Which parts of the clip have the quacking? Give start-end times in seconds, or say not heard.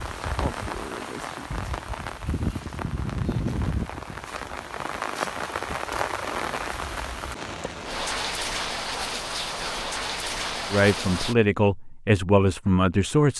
not heard.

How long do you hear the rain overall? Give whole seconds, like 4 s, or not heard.
11 s.